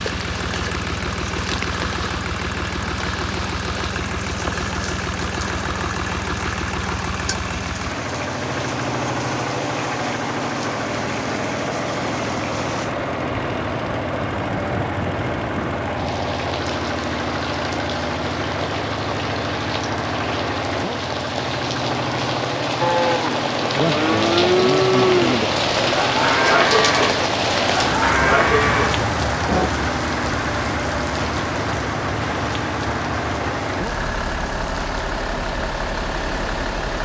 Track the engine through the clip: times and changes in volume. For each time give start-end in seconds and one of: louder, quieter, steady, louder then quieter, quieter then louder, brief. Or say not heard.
0.0-36.9 steady.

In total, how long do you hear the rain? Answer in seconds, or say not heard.
37 s.